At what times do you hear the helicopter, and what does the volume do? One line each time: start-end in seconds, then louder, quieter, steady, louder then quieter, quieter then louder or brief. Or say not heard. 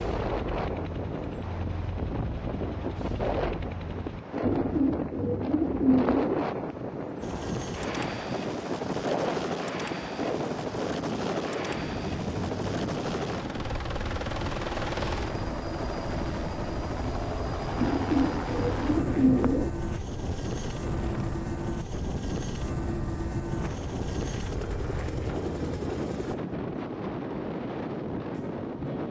0.0-4.2 steady
7.2-26.4 steady.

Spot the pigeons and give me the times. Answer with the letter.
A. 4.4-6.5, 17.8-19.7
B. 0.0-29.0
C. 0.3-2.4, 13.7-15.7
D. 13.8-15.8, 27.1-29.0
A.